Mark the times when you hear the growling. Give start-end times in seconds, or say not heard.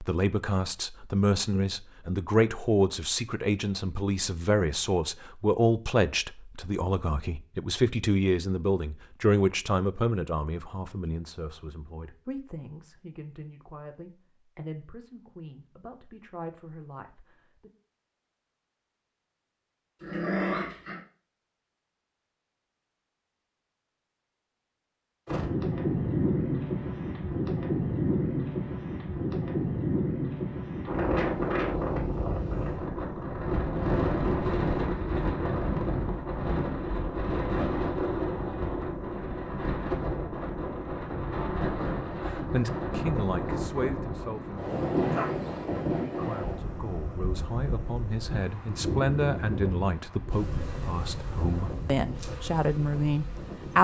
20.0-21.0, 45.1-45.7.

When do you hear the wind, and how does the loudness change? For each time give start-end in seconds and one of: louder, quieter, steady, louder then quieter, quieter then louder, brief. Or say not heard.
25.2-53.7 quieter.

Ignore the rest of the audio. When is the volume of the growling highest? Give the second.
20 s.